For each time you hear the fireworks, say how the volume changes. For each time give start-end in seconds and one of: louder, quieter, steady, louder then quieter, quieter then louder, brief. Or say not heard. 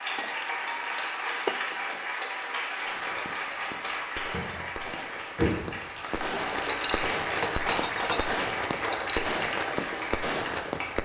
2.8-10.9 louder.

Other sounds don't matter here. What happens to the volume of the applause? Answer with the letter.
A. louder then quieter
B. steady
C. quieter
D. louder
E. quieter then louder
B.